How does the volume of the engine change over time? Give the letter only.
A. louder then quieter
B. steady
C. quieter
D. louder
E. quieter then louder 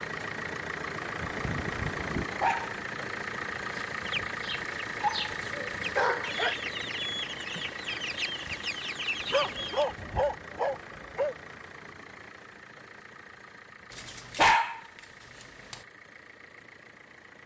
C.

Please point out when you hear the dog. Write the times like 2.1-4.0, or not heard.
1.2-2.8, 5.0-6.5, 9.3-11.3, 13.9-15.8.